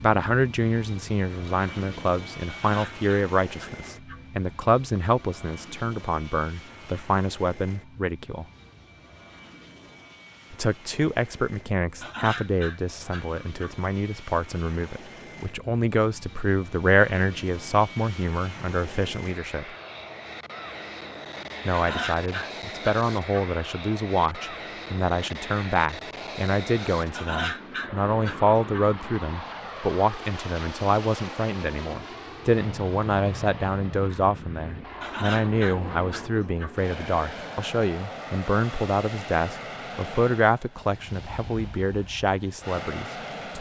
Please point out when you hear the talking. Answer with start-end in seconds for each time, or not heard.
0.0-8.4, 10.5-19.7, 21.6-43.5.